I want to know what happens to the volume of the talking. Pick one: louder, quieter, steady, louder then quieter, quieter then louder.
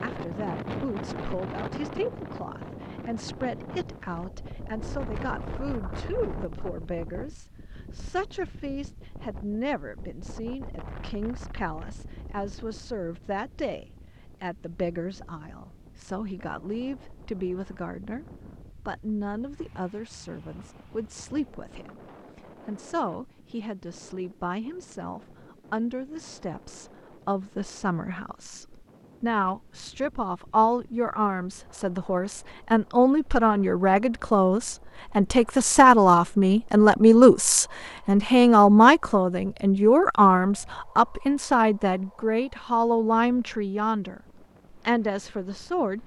louder.